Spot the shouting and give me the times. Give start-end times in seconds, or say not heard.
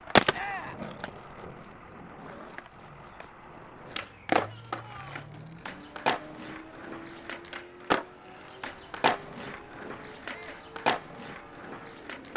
0.3-0.8, 4.4-5.2, 10.2-10.7.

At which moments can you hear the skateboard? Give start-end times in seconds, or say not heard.
0.1-12.3.